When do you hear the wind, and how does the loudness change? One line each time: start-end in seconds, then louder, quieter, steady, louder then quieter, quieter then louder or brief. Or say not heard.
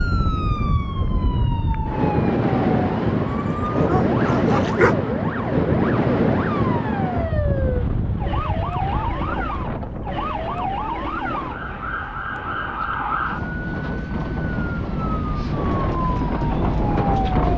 0.0-17.5 quieter then louder.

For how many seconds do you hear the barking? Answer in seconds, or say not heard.
2 s.